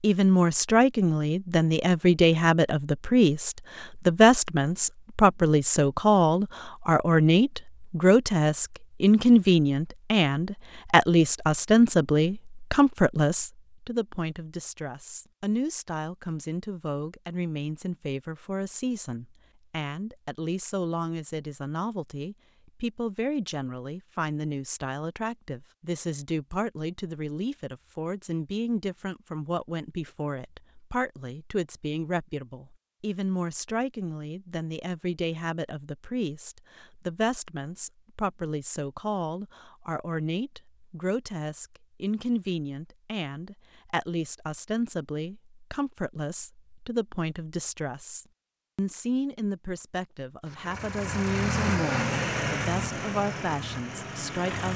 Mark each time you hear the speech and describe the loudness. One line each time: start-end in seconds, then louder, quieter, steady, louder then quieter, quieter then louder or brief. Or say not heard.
0.0-54.7 quieter.